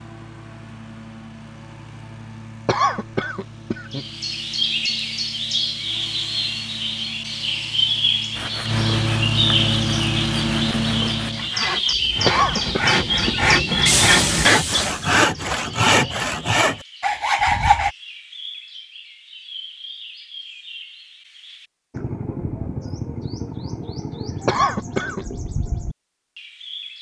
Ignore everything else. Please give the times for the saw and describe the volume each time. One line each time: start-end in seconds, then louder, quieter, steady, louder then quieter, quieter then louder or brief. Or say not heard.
8.3-17.9 louder.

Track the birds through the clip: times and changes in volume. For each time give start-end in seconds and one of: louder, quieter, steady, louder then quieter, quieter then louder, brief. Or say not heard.
3.9-26.9 quieter then louder.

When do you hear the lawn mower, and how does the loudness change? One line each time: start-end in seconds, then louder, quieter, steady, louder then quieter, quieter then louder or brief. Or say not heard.
0.0-11.6 louder.